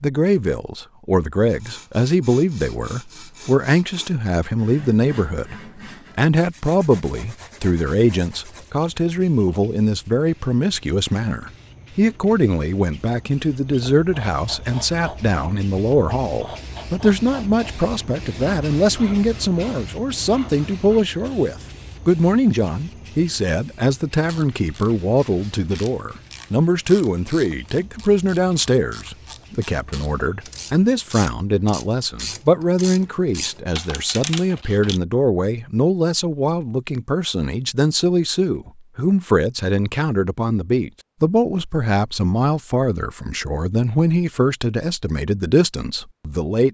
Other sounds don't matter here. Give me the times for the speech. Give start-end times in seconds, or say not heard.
0.0-5.5, 6.2-46.6.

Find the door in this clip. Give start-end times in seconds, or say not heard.
not heard.